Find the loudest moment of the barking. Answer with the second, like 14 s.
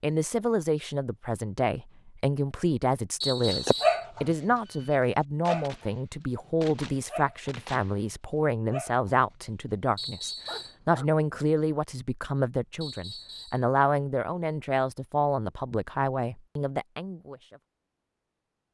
4 s.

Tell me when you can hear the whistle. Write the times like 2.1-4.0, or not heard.
3.2-4.0, 9.9-10.8, 12.8-13.7.